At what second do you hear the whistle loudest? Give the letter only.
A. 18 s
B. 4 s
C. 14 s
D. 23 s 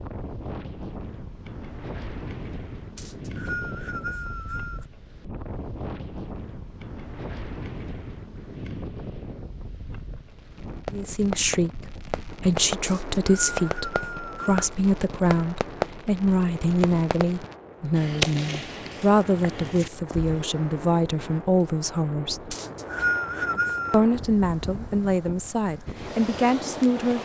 D.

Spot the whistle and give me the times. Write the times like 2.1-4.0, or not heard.
3.0-4.8, 12.8-14.6, 22.5-24.1.